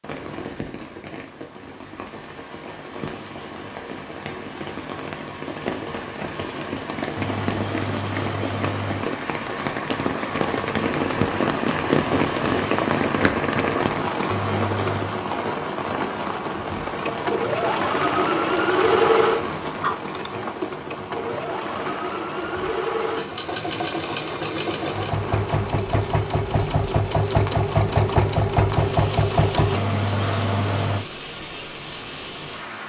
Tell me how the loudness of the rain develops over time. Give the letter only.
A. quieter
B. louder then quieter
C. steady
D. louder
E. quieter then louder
B.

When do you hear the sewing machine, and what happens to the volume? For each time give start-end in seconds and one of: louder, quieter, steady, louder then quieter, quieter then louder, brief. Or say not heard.
17.1-29.8 quieter then louder.